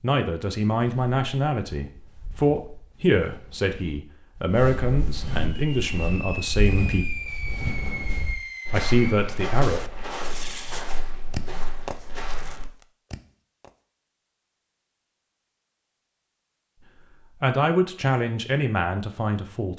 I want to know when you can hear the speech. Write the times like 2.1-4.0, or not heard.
0.0-7.2, 8.7-9.8, 17.4-19.7.